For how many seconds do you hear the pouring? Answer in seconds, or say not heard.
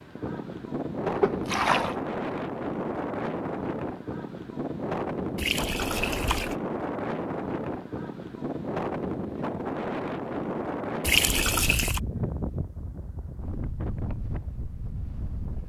3 s.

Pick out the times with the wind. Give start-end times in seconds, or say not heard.
0.0-15.6.